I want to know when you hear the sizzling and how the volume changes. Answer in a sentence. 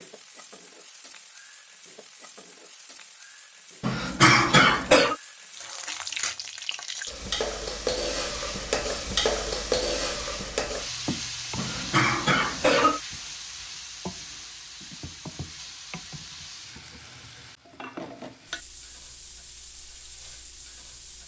You can hear the sizzling from 0.0 to 21.2 s, getting louder then quieter.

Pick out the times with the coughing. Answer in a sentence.
The coughing can be heard from 3.8 to 5.2 s and from 11.6 to 13.0 s.